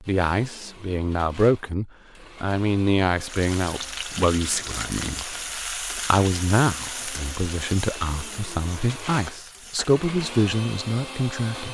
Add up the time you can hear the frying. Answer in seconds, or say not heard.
7 s.